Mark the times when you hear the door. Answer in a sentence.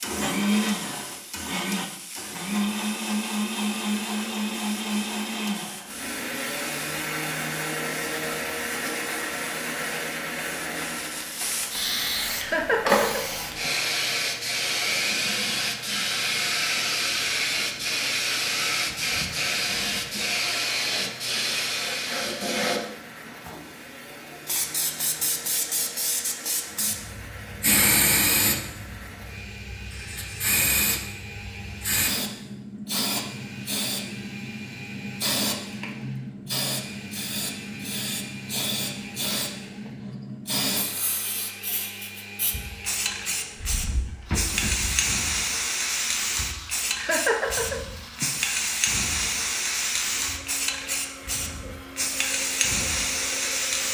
You can hear the door from 43.5 to 45.0 s.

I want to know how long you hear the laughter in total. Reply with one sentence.
You can hear the laughter for 3 seconds altogether.